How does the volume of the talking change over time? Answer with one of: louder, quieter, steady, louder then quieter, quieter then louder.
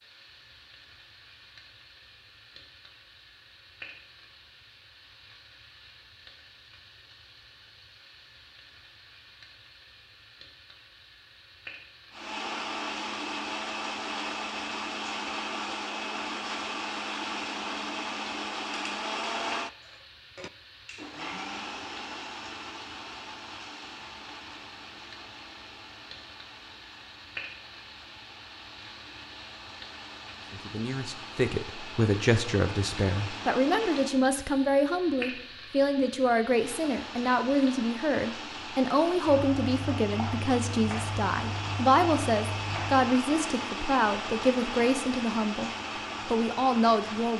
steady.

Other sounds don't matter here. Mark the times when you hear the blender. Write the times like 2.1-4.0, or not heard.
12.1-34.2, 36.4-47.3.